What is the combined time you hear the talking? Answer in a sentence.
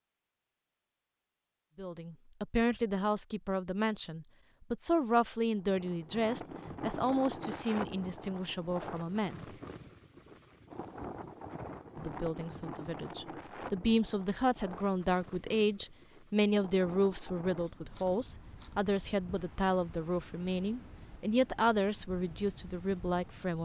You can hear the talking for 19 seconds altogether.